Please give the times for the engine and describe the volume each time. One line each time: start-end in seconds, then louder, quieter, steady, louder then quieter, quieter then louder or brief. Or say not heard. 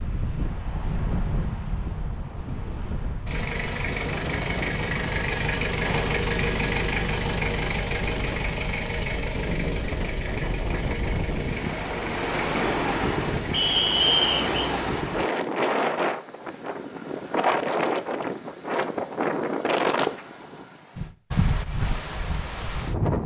3.2-15.1 quieter.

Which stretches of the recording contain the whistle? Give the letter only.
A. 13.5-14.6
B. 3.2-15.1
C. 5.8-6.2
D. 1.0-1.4
A.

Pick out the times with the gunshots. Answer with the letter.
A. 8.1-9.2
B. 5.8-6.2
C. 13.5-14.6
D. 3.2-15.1
B.